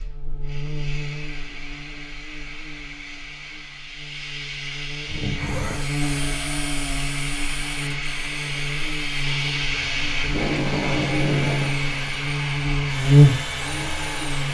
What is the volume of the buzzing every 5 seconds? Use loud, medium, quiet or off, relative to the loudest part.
quiet, medium, loud.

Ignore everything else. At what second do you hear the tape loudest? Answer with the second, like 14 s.
11 s.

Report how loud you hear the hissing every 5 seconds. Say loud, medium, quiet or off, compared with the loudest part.
medium, loud, loud.